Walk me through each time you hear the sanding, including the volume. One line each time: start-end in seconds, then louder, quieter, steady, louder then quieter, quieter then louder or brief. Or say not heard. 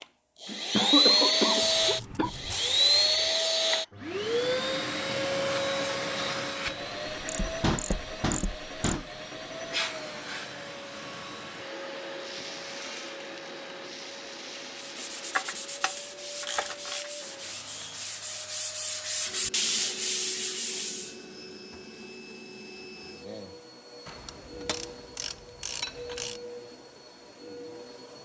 14.8-21.2 louder.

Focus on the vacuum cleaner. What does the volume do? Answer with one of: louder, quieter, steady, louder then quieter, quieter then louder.
quieter.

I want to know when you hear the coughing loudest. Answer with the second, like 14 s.
1 s.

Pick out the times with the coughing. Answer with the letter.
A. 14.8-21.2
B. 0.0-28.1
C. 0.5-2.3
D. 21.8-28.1
C.